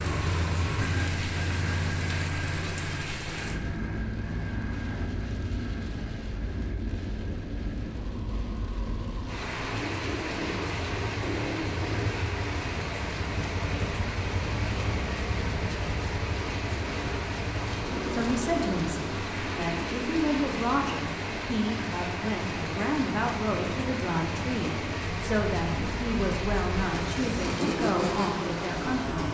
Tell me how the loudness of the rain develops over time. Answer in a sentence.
The loudness of the rain stays about the same.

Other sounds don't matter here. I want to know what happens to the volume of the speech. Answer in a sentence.
The volume of the speech stays about the same.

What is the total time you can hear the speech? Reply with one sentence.
You can hear the speech for 11 seconds altogether.